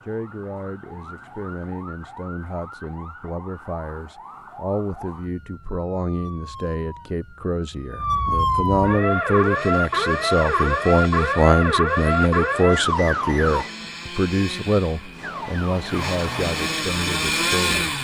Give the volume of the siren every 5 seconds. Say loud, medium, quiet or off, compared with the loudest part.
quiet, loud, loud, medium.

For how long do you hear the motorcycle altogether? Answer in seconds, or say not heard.
9 s.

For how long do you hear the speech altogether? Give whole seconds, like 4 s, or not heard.
18 s.